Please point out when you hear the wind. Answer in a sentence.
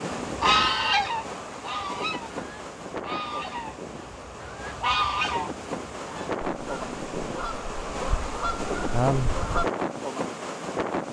You can hear the wind from 0.0 to 11.0 s.